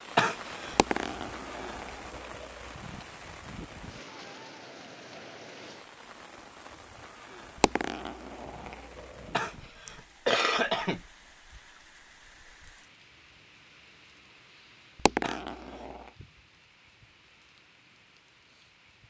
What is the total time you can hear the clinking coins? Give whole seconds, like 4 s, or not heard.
5 s.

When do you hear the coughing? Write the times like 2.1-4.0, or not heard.
0.1-0.8, 9.3-11.0, 15.2-15.9.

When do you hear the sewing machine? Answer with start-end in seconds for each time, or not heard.
not heard.